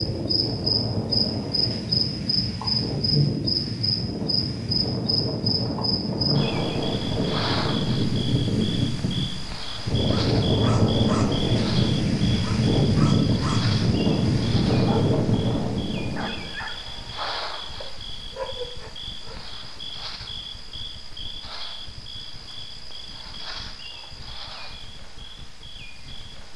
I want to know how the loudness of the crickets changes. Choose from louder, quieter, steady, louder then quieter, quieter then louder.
quieter.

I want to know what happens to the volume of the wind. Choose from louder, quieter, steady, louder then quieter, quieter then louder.
louder.